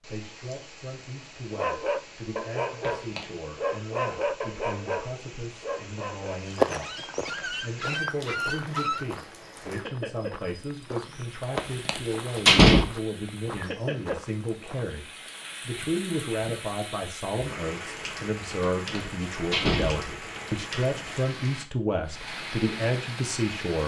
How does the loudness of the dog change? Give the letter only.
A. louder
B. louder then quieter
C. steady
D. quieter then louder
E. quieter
D.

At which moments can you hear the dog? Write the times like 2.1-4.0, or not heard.
1.5-9.1.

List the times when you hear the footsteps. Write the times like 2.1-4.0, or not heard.
6.5-15.3.